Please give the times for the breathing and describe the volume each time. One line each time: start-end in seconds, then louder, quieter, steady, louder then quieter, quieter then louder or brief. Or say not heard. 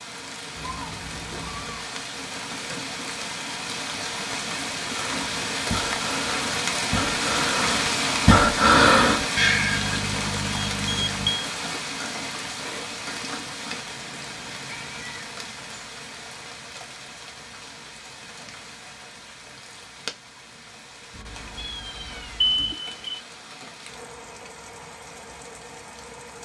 5.0-9.9 louder.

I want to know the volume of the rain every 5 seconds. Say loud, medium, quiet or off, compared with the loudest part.
medium, loud, medium, quiet, quiet, quiet.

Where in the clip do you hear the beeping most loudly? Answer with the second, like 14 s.
11 s.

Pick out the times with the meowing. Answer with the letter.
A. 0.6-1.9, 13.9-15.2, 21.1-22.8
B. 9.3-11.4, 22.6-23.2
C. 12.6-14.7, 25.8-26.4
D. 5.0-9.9
A.